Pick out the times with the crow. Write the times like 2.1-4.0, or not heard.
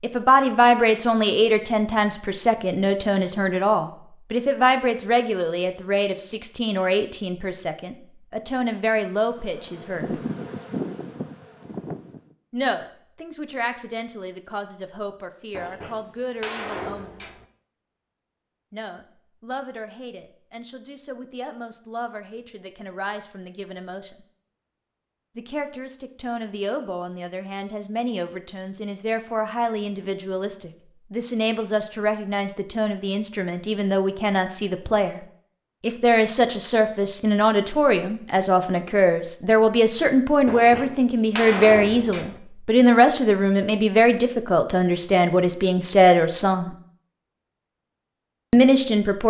not heard.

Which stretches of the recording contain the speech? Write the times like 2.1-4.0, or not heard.
0.0-10.2, 12.5-17.4, 18.7-24.2, 25.4-35.2, 35.8-46.7, 48.5-49.2.